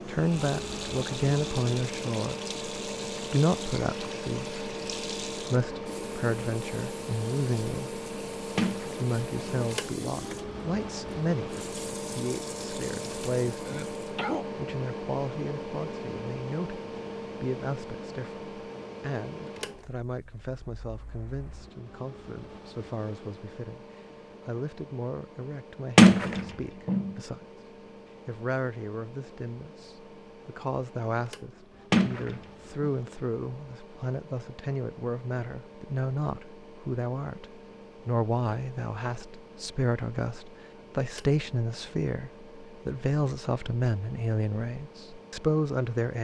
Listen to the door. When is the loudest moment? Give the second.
26 s.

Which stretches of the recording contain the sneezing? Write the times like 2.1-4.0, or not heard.
13.6-14.4.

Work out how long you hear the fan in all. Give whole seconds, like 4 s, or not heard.
46 s.